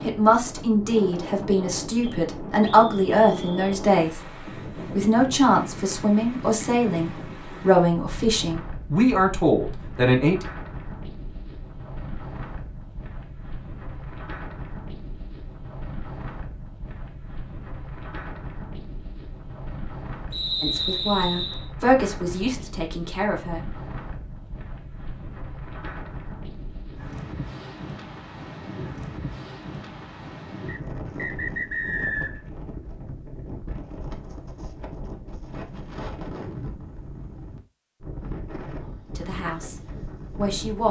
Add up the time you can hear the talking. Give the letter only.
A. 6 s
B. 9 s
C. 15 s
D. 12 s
C.